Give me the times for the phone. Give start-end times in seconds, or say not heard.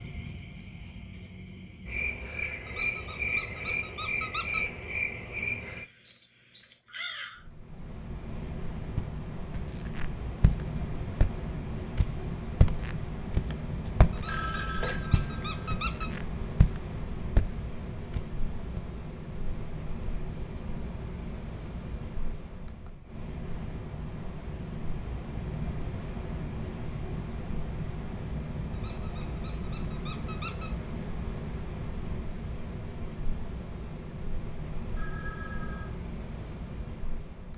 13.8-15.7, 35.0-35.9.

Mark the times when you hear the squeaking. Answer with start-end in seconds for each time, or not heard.
2.6-4.6, 14.1-16.1, 28.7-30.7.